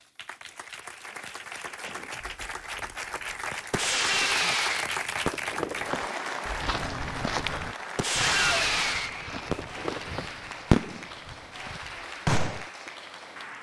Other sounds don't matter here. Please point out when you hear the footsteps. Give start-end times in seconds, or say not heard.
6.6-11.8.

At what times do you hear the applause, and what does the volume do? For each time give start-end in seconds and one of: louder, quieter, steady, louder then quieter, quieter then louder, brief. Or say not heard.
0.0-13.5 louder then quieter.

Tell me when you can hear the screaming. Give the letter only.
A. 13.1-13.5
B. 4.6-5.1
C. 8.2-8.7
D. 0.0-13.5
C.